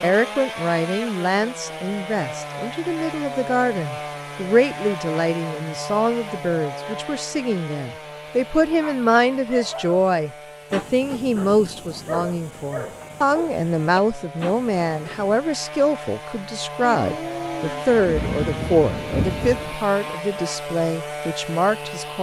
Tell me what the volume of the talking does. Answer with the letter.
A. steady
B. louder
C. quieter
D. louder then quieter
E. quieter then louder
A.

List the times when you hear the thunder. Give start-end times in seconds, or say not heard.
16.9-19.8.